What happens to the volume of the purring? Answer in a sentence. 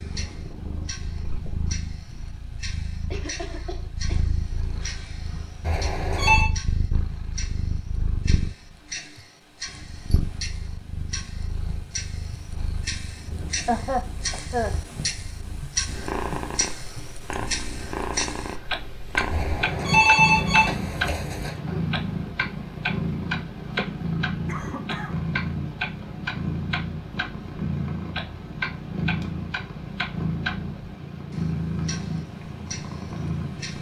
The volume of the purring goes up.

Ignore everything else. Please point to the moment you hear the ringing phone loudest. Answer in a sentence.
The loudest moment of the ringing phone is at 20 seconds.